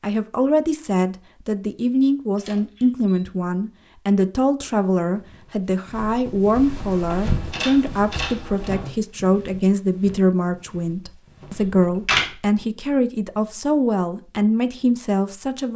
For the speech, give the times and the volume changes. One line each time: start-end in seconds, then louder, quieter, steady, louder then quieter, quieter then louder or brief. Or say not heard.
0.0-15.7 steady.